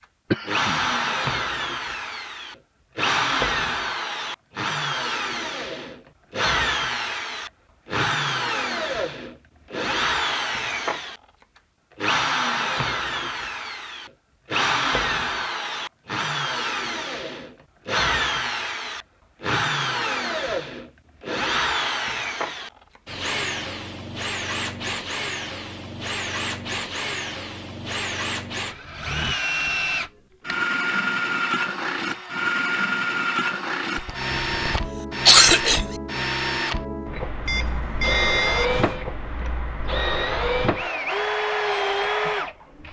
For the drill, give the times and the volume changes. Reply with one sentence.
The drill can be heard from 0.5 to 42.8 s, at a steady volume.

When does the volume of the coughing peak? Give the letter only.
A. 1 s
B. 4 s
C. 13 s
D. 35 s
D.